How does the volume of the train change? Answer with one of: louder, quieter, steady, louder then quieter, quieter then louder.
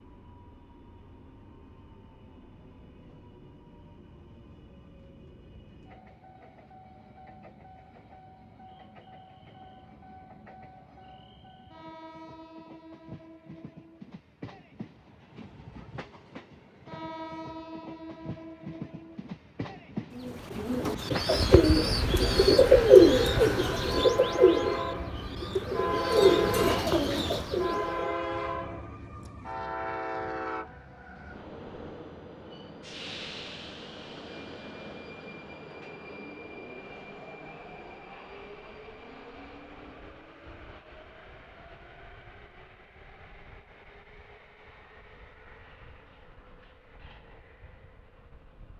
louder then quieter.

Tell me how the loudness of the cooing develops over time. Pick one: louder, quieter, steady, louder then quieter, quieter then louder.
louder then quieter.